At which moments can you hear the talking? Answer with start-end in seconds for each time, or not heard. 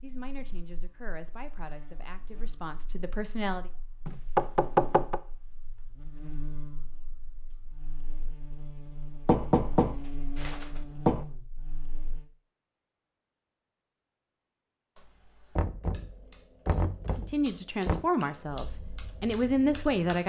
0.0-3.7, 17.1-20.2.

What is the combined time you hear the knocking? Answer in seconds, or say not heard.
6 s.